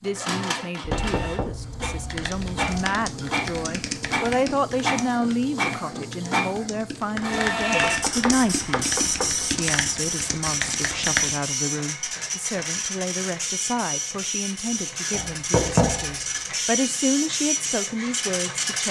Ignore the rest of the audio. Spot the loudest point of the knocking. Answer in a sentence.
The loudest moment of the knocking is at 16 seconds.